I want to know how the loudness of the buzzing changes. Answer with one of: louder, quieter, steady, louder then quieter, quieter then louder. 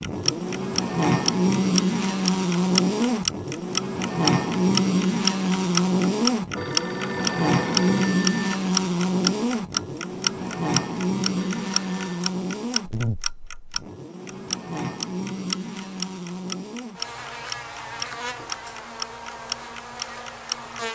quieter.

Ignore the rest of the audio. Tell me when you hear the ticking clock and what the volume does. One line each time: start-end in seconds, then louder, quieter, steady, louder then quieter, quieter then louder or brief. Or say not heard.
0.0-20.9 quieter.